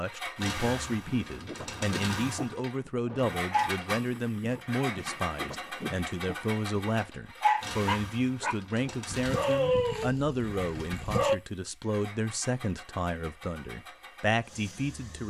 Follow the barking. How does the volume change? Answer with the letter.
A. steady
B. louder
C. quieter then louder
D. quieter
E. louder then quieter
B.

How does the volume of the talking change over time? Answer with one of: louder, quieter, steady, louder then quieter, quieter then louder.
steady.